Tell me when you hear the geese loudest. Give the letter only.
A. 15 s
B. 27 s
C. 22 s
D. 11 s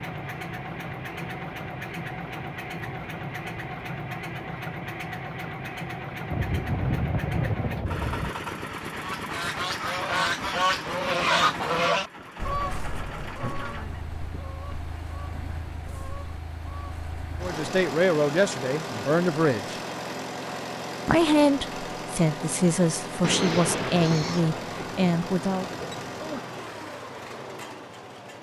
D.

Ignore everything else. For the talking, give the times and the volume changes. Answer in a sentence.
The talking can be heard briefly from 17.4 to 19.8 s; and from 21.1 to 25.6 s, at a steady volume.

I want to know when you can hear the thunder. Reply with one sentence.
You can hear the thunder from 6.3 to 8.3 s and from 23.2 to 26.4 s.